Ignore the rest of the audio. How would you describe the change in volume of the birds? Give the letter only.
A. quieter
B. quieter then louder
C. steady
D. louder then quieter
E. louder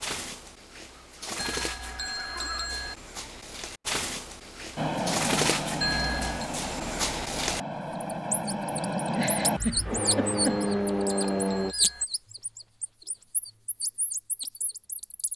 D.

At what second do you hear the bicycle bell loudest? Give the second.
6 s.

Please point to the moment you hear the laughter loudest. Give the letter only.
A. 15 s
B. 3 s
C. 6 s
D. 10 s
D.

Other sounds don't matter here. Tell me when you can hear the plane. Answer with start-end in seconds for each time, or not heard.
4.8-11.8.